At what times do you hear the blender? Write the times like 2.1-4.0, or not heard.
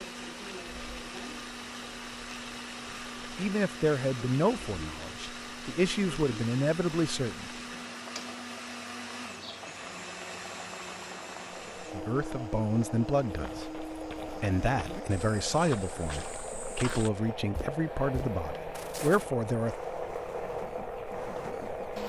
0.0-22.0.